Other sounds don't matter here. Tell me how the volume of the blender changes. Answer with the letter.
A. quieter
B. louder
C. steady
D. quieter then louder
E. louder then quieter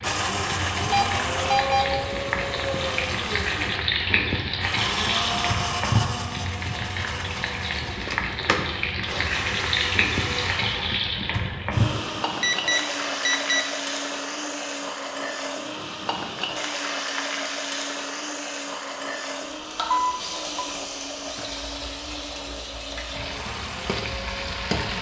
A.